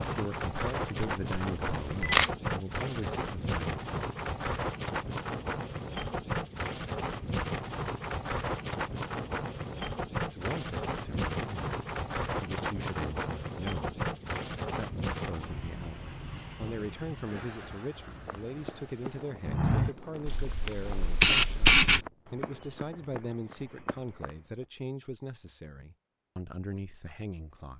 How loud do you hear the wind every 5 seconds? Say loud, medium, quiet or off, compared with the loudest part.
loud, loud, loud, medium, quiet, off.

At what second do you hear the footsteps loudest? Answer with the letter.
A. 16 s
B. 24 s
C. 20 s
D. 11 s
C.